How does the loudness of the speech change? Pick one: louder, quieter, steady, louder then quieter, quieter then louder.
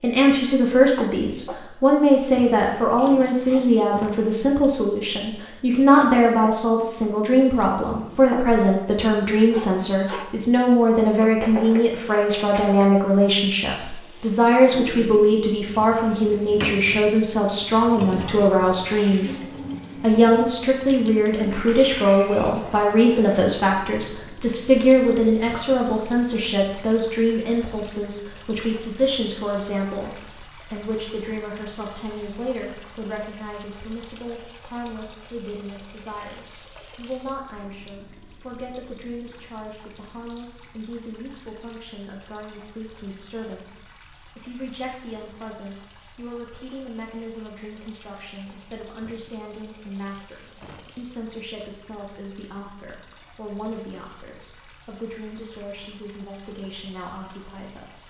quieter.